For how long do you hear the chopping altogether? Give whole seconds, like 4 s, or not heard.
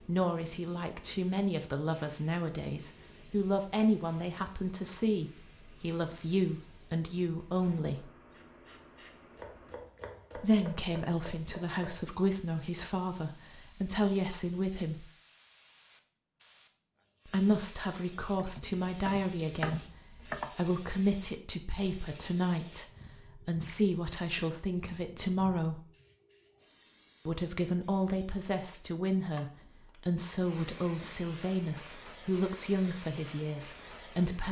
5 s.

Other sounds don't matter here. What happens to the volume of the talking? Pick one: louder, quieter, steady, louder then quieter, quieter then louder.
steady.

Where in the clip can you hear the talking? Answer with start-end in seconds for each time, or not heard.
0.1-8.1, 10.3-15.1, 17.2-25.8, 27.2-34.4.